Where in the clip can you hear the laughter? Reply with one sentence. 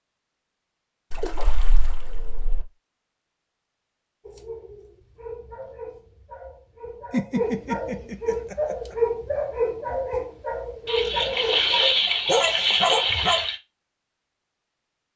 The laughter can be heard from 7.1 to 8.9 s.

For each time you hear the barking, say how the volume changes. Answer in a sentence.
The barking can be heard from 4.2 to 13.4 s, getting louder.